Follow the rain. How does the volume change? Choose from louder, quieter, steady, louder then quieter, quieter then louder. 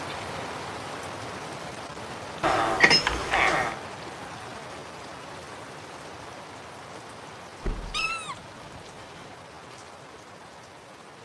quieter.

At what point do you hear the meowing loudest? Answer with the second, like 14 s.
3 s.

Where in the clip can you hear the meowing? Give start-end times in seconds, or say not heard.
2.4-3.8, 7.9-9.3.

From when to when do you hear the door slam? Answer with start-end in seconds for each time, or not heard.
7.6-8.1.